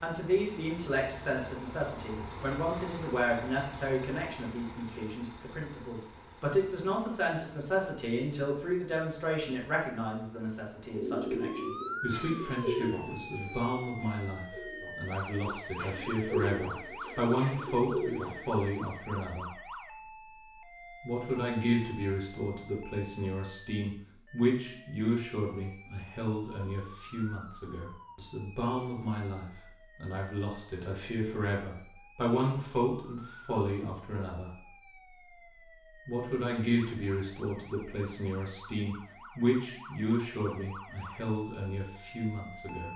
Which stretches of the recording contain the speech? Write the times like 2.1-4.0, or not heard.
0.0-19.5, 21.0-34.5, 36.0-42.9.